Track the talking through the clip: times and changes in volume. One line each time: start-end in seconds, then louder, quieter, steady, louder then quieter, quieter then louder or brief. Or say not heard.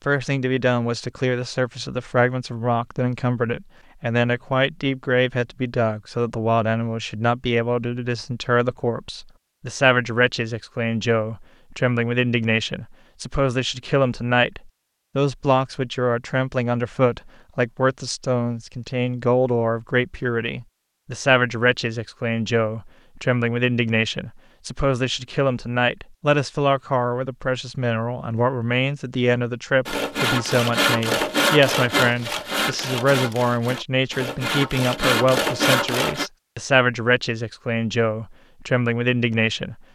0.1-39.8 steady.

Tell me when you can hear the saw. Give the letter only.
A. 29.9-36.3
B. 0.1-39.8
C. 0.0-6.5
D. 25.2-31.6
A.